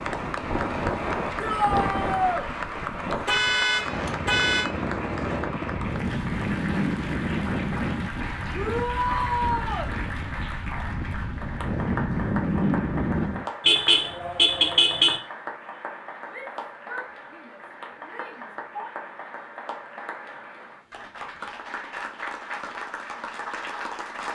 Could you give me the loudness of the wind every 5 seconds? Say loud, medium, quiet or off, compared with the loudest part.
loud, loud, loud, off, off.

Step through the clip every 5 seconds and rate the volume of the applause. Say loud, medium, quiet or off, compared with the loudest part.
loud, loud, loud, medium, loud.